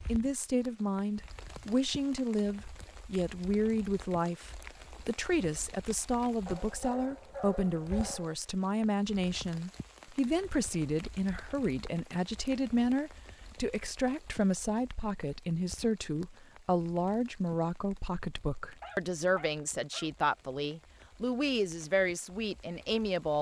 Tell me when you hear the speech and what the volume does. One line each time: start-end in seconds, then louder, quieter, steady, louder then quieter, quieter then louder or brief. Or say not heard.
0.1-23.3 steady.